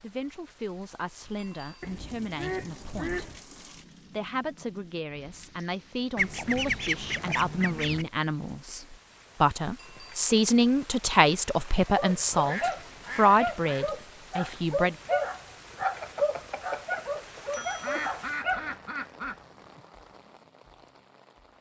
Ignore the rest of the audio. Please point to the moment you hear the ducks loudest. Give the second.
7 s.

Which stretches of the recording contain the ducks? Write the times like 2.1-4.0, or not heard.
1.8-3.4, 6.2-8.1, 12.3-13.9, 17.4-19.8.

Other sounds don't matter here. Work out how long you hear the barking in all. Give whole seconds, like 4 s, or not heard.
7 s.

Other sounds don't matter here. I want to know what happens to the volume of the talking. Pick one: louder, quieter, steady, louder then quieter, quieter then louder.
louder.